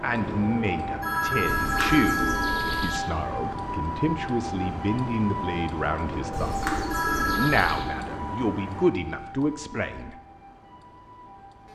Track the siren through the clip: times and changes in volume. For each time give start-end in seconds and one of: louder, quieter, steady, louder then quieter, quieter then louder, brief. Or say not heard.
0.0-11.6 quieter.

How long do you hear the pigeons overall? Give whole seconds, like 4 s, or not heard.
3 s.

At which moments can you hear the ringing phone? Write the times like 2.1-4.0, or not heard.
1.0-3.0, 6.9-7.8.